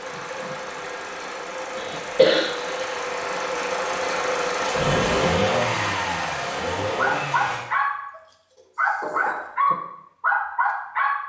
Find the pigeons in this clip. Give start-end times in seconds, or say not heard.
not heard.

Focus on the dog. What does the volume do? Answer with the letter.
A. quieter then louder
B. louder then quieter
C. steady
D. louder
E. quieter
A.